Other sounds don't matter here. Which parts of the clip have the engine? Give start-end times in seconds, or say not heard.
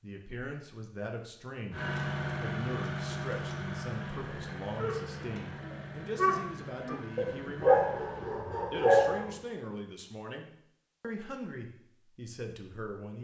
1.7-8.3.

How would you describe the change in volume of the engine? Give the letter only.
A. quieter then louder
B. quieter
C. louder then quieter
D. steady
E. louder
B.